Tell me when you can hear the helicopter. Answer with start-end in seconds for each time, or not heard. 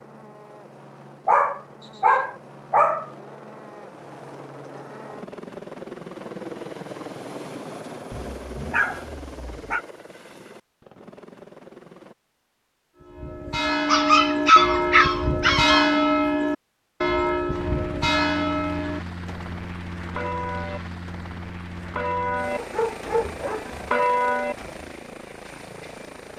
0.0-12.2, 17.4-26.3.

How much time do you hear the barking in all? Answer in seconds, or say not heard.
7 s.